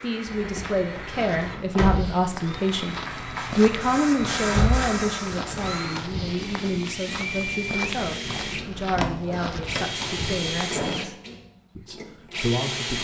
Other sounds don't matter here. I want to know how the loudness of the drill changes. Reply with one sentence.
The volume of the drill goes up.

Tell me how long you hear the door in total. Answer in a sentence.
The door can be heard for 3 seconds in total.